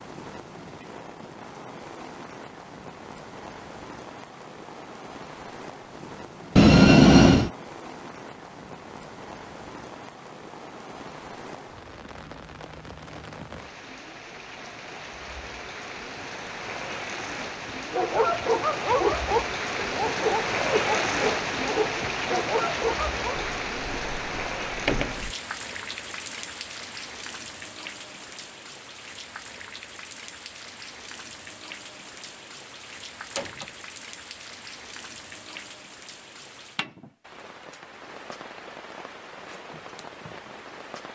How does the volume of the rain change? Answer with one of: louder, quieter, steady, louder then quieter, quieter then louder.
louder then quieter.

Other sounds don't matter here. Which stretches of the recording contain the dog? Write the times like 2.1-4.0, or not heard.
17.9-23.4.